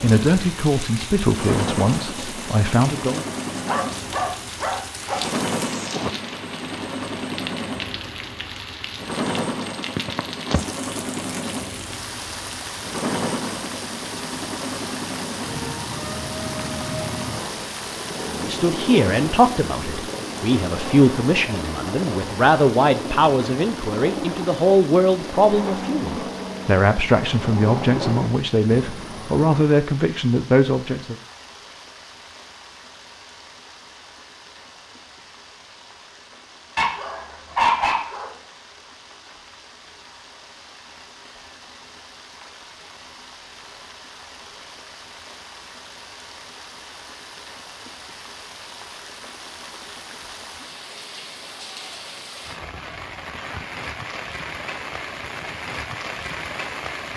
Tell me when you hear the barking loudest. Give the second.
38 s.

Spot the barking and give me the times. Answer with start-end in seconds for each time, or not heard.
3.6-5.2, 36.8-38.3.